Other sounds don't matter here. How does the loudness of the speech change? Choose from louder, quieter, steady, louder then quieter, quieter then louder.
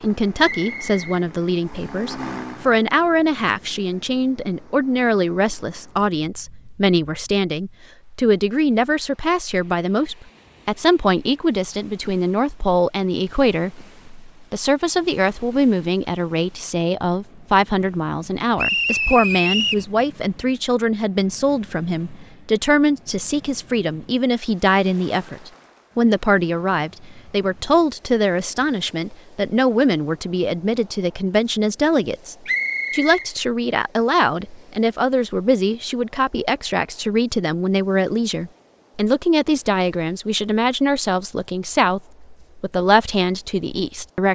steady.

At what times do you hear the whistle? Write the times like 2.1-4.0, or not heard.
0.6-1.9, 18.6-19.9, 32.5-33.3.